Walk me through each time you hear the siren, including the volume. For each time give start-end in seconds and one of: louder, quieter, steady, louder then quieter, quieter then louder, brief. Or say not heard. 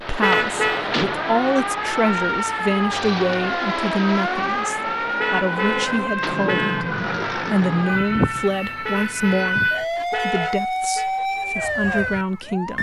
0.0-12.7 steady.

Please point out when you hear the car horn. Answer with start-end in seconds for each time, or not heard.
0.2-0.8, 5.2-6.8, 8.8-11.1.